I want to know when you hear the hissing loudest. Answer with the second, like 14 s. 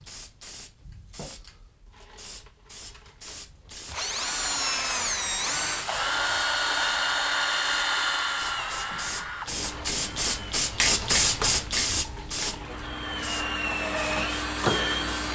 11 s.